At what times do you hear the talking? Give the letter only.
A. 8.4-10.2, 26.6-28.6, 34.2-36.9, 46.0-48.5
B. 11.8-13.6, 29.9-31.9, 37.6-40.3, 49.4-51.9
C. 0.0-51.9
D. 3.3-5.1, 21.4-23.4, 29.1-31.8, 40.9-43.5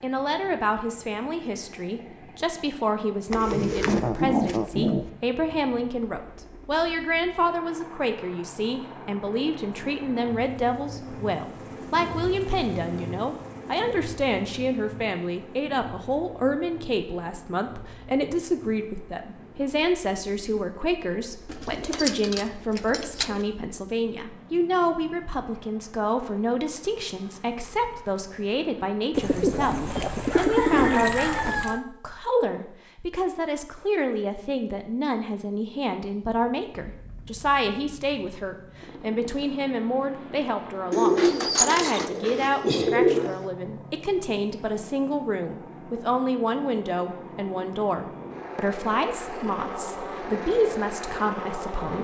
C.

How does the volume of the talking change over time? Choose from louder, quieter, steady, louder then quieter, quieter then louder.
steady.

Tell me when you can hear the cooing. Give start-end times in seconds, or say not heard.
3.3-5.1, 21.4-23.4, 29.1-31.8, 40.9-43.5.